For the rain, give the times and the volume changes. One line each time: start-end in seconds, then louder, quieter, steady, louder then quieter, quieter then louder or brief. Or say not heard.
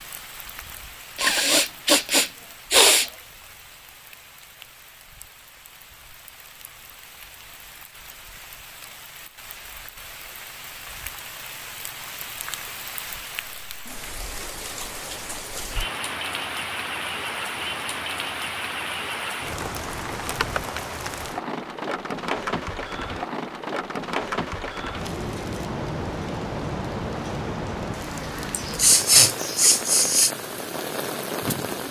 0.0-31.8 louder.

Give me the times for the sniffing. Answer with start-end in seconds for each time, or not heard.
1.1-3.1, 28.5-30.3.